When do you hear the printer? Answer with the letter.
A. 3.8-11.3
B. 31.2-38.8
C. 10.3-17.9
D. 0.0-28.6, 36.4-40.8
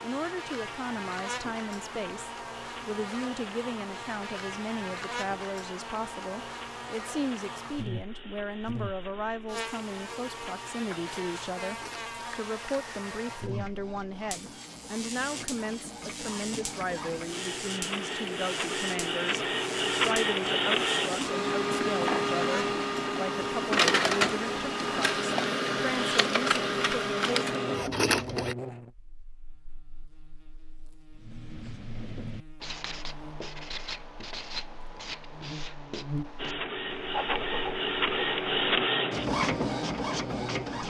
D.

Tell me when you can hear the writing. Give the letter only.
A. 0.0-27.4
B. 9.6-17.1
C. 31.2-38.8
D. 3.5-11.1
C.